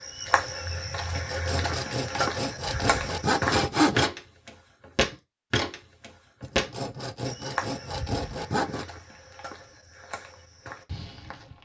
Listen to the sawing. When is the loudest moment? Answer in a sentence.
The loudest moment of the sawing is at 4 seconds.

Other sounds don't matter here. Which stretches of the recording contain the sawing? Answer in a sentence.
You can hear the sawing from 1.1 to 4.1 s and from 6.4 to 8.8 s.